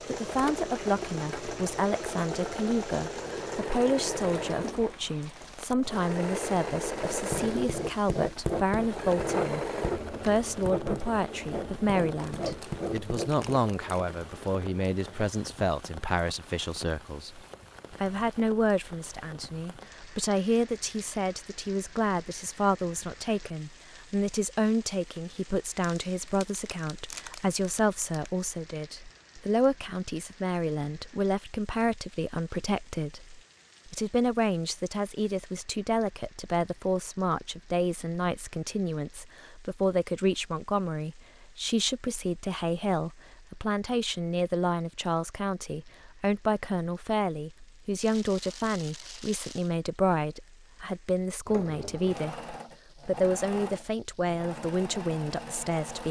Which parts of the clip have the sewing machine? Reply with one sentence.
You can hear the sewing machine from 0.0 to 15.3 s and from 51.5 to 56.0 s.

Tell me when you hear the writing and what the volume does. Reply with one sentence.
The writing can be heard from 7.1 to 13.4 s, at a steady volume.